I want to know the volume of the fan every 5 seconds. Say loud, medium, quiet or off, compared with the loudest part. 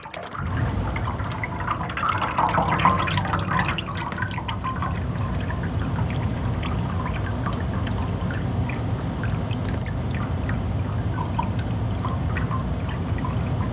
medium, loud, loud.